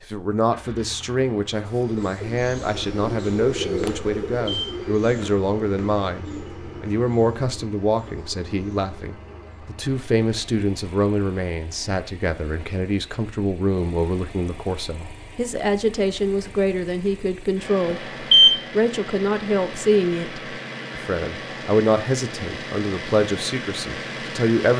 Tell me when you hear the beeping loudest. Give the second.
18 s.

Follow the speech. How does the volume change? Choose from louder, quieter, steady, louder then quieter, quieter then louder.
steady.